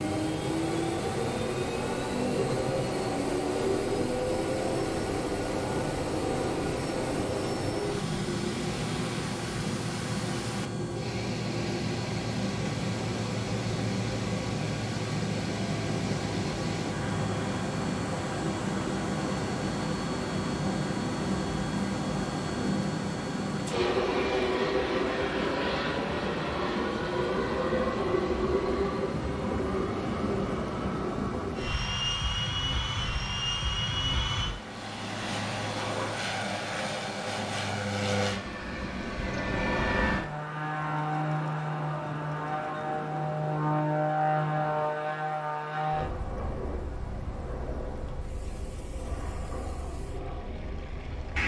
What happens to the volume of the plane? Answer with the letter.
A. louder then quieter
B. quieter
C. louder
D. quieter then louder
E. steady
E.